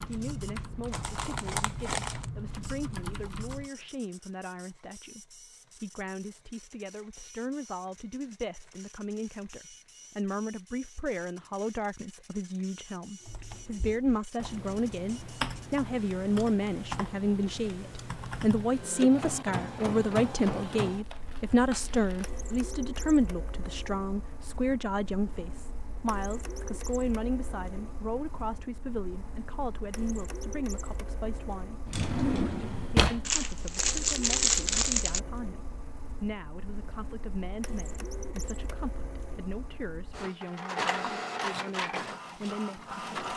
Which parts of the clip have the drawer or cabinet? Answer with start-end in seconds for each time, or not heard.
31.9-33.4.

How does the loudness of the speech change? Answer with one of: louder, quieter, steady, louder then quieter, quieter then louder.
louder then quieter.